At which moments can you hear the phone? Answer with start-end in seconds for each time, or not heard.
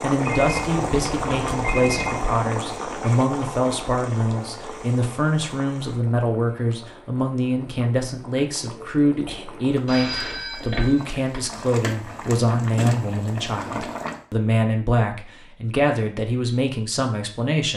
0.2-2.2, 9.8-11.5.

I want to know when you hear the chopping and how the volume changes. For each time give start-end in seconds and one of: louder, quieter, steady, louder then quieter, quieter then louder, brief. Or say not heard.
not heard.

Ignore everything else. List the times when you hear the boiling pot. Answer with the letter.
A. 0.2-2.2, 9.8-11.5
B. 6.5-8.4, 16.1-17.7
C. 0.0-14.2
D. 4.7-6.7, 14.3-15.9
C.